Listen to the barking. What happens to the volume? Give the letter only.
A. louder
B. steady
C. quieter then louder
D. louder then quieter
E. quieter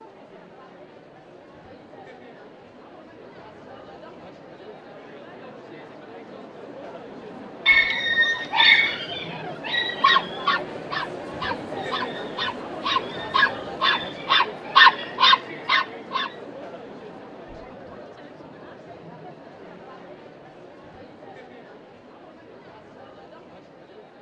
C.